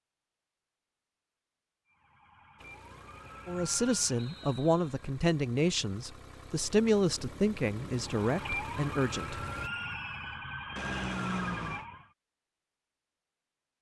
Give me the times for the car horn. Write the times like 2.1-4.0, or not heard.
10.8-11.8.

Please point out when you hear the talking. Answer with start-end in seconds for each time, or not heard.
3.5-9.4.